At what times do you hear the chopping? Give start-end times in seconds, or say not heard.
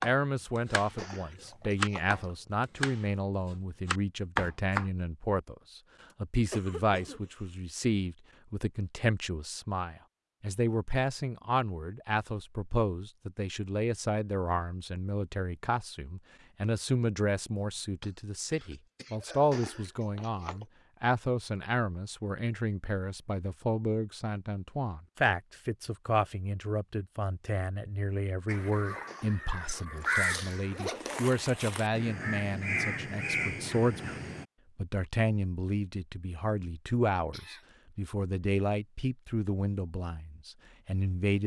0.0-4.8.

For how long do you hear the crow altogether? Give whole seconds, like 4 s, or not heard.
6 s.